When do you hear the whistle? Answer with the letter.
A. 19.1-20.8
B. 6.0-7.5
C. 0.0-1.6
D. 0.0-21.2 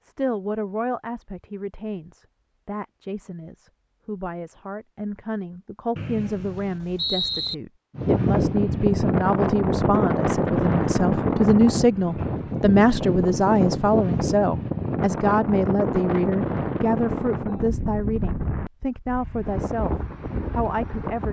B.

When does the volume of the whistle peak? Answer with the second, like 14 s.
7 s.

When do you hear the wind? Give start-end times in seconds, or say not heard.
8.0-21.2.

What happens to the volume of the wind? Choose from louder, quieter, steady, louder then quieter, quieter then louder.
quieter.